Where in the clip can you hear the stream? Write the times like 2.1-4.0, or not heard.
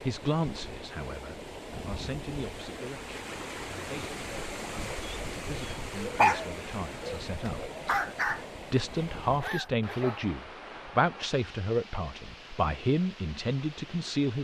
0.0-14.3.